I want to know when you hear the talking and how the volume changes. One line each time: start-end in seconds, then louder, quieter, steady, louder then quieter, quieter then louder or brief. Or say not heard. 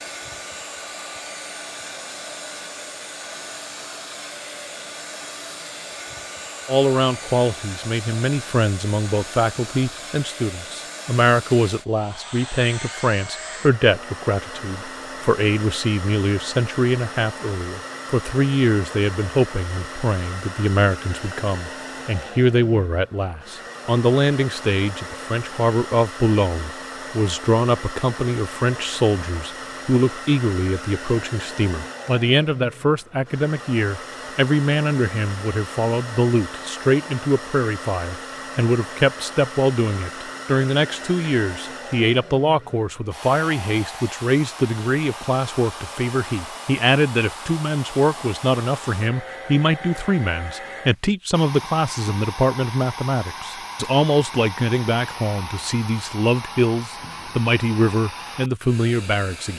6.7-59.5 steady.